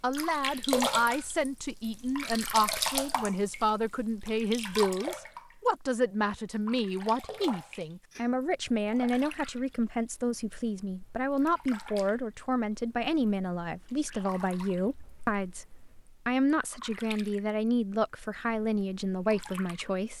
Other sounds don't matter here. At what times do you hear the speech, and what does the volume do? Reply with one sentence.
You can hear the speech from 0.0 to 20.1 s, at a steady volume.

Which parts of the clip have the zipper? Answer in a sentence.
You can't hear the zipper here.